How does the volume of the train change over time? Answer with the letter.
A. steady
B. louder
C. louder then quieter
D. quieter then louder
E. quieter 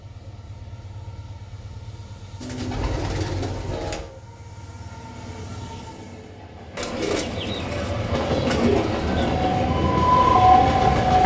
B.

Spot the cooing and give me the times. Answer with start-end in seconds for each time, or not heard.
2.4-4.1, 6.8-9.3.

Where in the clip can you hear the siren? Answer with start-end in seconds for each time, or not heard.
9.3-11.2.